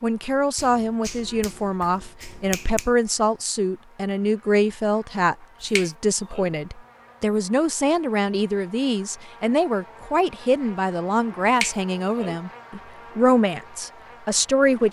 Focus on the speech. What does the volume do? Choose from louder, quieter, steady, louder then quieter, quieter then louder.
steady.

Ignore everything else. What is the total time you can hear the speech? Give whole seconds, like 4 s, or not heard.
15 s.